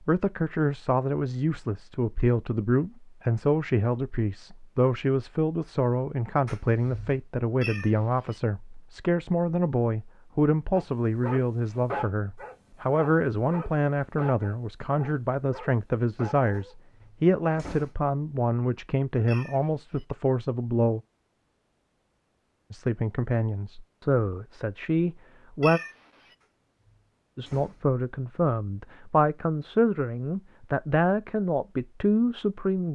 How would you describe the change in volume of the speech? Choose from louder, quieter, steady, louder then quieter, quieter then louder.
steady.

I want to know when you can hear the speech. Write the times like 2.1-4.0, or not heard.
0.1-21.0, 22.7-25.8, 27.4-32.9.